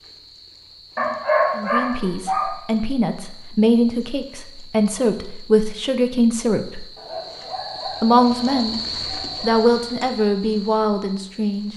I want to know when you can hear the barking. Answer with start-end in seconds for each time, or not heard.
0.9-2.5, 7.0-9.7.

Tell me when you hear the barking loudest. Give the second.
1 s.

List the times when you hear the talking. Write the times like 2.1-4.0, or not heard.
1.6-6.8, 8.0-8.8, 9.4-11.7.